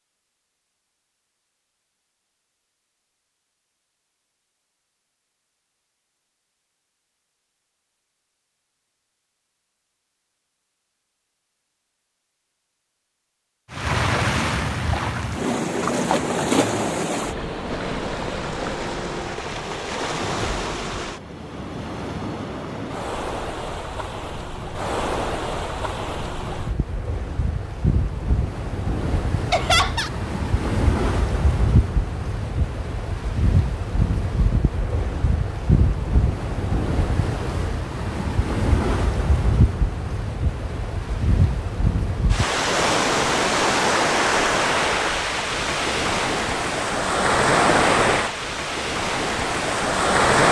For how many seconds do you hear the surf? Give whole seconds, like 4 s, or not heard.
37 s.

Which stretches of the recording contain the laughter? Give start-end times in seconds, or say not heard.
29.5-30.1.